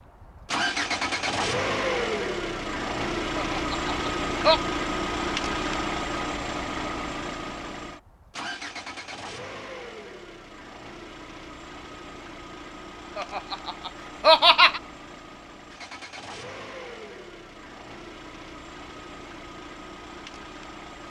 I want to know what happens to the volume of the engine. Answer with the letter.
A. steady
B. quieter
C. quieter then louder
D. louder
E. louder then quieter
B.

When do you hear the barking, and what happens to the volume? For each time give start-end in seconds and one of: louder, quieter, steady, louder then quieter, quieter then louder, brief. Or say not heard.
not heard.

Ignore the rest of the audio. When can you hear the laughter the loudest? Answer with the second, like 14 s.
14 s.